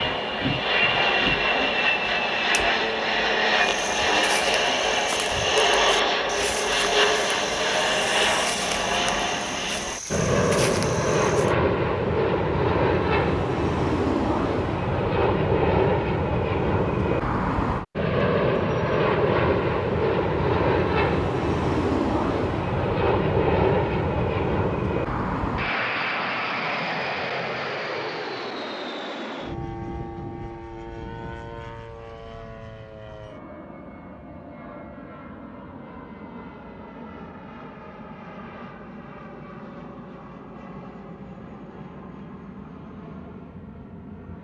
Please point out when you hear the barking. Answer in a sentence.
You can't hear the barking here.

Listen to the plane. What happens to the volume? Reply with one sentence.
The volume of the plane goes down.